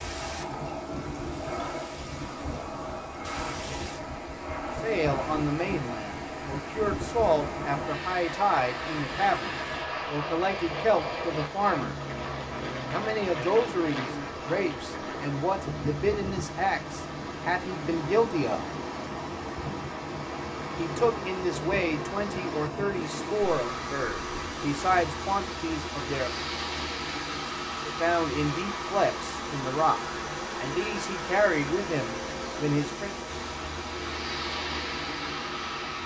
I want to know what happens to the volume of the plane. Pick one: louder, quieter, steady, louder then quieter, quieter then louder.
steady.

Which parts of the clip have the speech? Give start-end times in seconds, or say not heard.
4.8-12.0, 12.9-18.6, 20.8-26.4, 27.9-33.1.